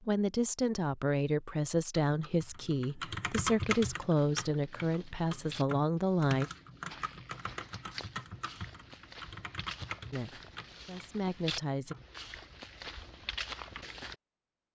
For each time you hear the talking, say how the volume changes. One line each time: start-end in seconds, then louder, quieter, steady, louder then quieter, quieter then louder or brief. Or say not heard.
0.0-6.5 steady
10.1-11.9 brief.